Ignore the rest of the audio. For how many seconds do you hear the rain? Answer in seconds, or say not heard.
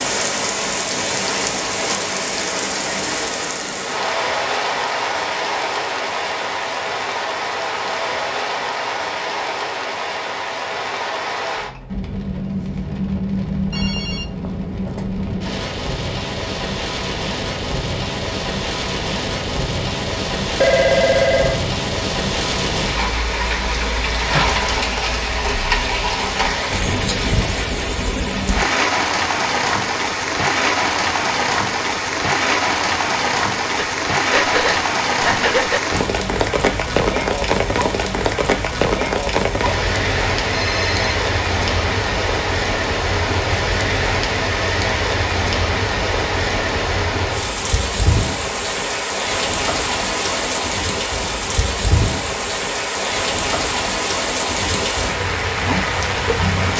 57 s.